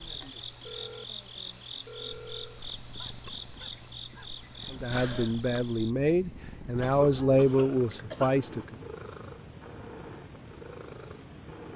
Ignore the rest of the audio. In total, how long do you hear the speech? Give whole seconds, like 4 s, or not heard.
4 s.